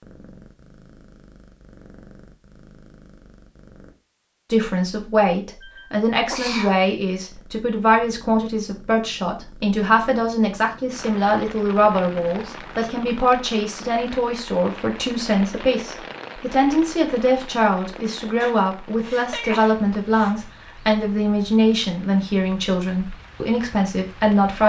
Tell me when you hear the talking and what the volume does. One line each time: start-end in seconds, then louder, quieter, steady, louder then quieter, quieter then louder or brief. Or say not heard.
4.5-24.6 steady.